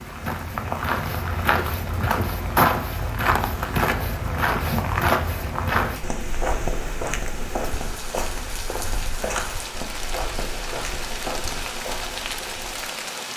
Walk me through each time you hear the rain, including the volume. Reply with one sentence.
You can hear the rain from 0.0 to 13.3 s, getting louder.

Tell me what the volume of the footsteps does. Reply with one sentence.
The loudness of the footsteps goes down.